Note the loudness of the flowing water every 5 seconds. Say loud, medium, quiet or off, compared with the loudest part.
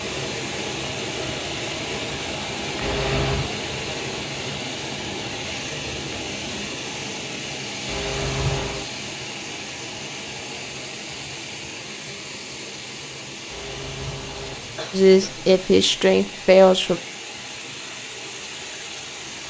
loud, loud, medium, medium.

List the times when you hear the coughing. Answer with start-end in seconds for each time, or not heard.
2.8-3.5, 7.8-8.8, 13.4-15.5.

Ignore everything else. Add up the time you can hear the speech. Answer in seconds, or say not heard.
2 s.